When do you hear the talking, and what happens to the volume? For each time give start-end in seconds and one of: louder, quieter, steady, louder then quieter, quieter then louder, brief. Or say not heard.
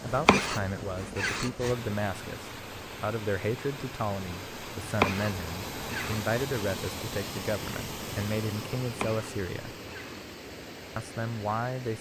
0.0-9.8 steady
10.9-11.9 brief.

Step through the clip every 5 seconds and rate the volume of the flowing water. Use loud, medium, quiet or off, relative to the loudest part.
loud, loud, medium.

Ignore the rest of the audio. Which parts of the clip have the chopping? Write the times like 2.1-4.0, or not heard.
0.1-1.8, 4.8-6.2, 8.8-10.2.